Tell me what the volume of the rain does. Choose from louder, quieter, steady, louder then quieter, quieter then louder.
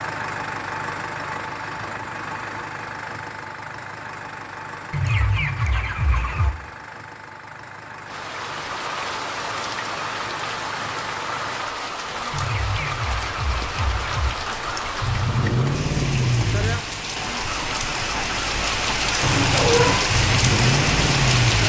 louder.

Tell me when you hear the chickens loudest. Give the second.
5 s.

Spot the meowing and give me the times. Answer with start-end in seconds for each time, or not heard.
19.2-20.0.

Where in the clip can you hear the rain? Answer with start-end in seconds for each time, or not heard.
8.1-21.6.